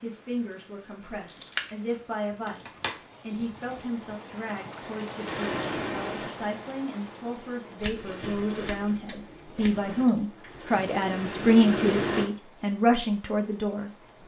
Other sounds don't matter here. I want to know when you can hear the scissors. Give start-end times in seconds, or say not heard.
1.2-3.8, 7.8-9.9.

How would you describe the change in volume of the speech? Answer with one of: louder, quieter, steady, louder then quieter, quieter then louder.
louder.